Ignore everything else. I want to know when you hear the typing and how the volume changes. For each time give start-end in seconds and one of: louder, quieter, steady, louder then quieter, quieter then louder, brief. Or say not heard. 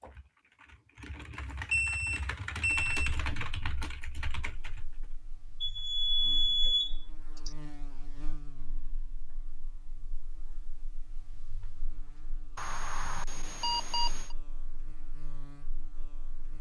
0.0-4.9 louder then quieter.